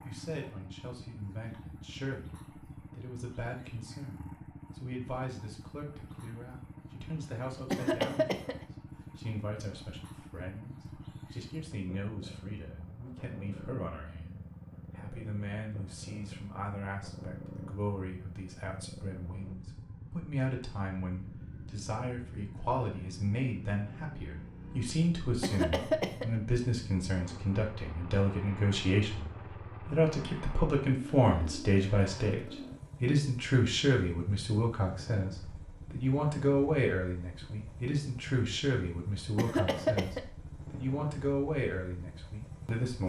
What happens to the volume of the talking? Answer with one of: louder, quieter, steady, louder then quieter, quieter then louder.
louder.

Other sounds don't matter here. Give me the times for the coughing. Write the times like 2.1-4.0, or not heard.
7.7-8.7, 25.4-26.2, 39.4-40.2.